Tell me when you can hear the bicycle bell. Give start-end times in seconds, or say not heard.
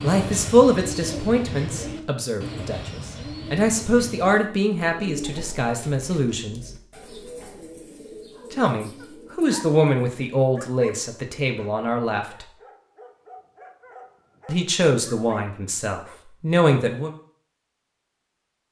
not heard.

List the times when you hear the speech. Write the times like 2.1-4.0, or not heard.
0.0-6.7, 8.5-12.4, 14.4-17.1.